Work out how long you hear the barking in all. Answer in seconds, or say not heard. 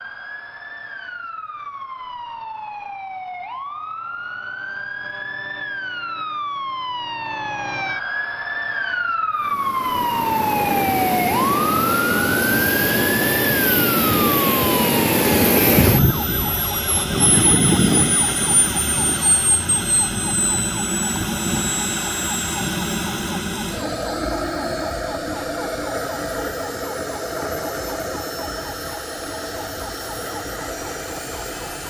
not heard.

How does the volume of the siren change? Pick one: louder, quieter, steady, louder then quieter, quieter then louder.
louder then quieter.